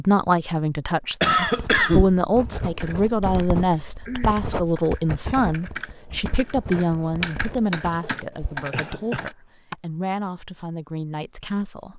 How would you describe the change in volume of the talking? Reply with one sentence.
The loudness of the talking goes down.